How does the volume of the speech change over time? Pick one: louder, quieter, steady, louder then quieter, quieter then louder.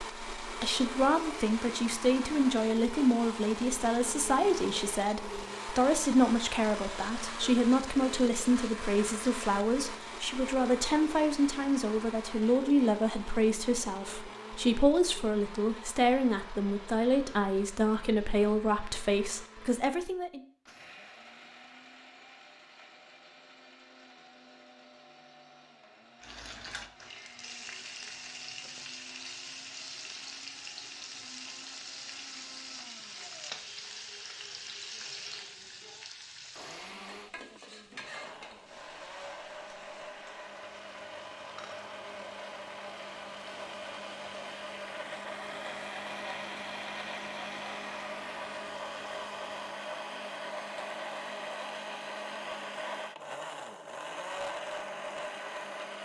steady.